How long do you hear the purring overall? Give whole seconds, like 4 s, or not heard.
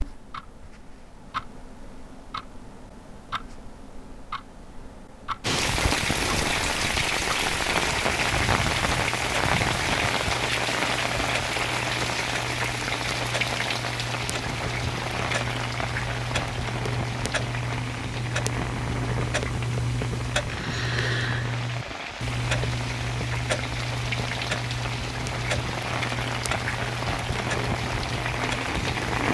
not heard.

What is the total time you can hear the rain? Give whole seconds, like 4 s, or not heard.
24 s.